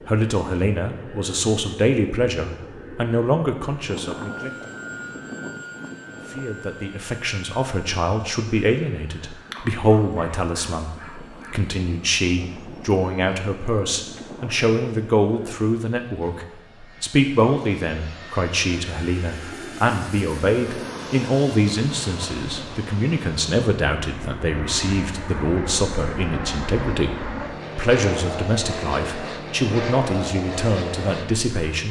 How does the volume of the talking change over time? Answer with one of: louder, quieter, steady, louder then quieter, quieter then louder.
steady.